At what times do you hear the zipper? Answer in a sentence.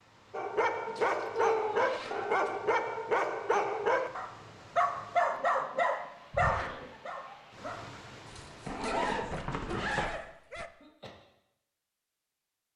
The zipper can be heard from 0.8 to 2.5 s, from 6.3 to 6.8 s and from 8.7 to 10.1 s.